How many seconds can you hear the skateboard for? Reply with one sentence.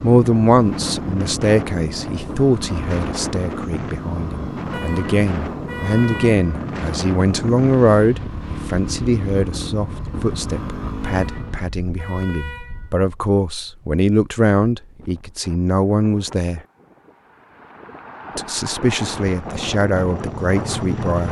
You can't hear the skateboard here.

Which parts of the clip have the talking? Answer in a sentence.
The talking can be heard from 0.0 to 16.6 s and from 18.4 to 21.2 s.